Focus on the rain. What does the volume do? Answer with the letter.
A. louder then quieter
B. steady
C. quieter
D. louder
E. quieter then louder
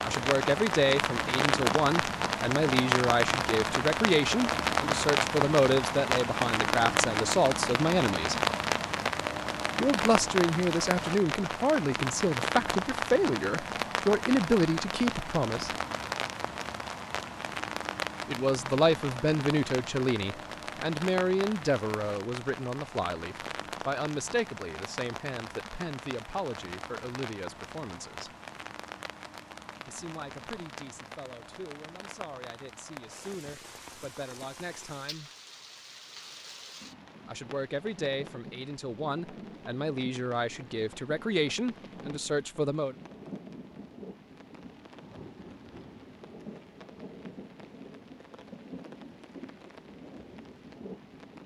C.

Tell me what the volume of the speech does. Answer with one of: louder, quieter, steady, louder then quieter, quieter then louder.
quieter then louder.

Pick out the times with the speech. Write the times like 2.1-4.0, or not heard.
0.0-8.3, 9.8-15.7, 18.2-28.4, 29.9-35.3, 37.2-43.0.